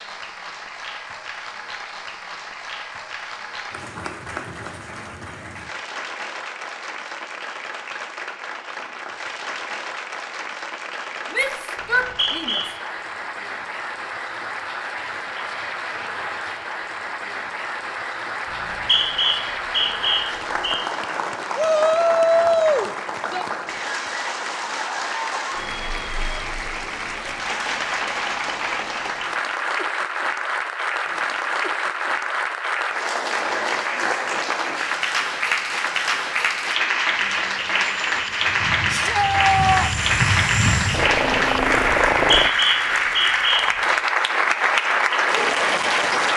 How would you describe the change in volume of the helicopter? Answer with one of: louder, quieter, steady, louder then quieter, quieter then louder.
louder.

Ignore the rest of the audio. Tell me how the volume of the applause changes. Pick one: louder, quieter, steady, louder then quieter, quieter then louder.
louder.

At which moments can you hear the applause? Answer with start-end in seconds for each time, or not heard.
0.0-46.3.